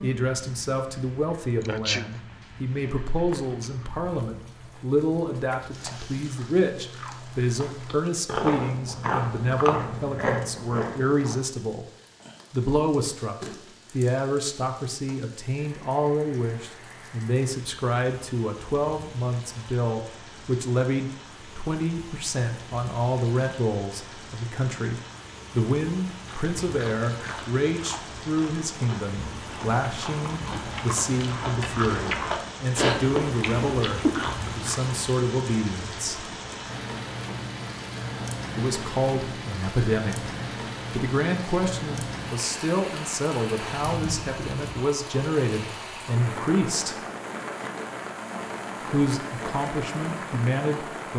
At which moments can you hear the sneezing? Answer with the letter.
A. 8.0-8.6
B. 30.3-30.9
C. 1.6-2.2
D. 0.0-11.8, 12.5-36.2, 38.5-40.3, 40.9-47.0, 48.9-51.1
C.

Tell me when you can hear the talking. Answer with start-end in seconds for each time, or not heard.
0.0-11.8, 12.5-36.2, 38.5-40.3, 40.9-47.0, 48.9-51.1.